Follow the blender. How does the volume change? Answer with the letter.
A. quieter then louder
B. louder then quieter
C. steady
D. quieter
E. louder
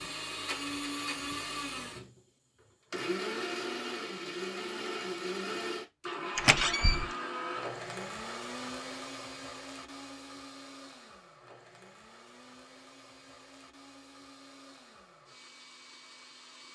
D.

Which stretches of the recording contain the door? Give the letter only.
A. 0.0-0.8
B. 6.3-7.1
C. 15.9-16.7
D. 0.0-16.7
B.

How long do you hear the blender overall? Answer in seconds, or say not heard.
17 s.